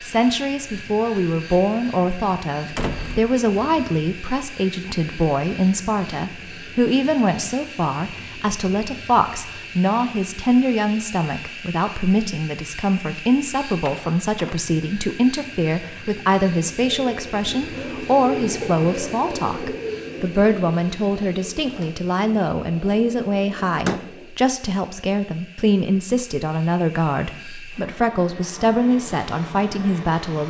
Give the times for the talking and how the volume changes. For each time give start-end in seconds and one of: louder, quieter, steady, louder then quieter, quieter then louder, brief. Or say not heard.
0.0-30.4 steady.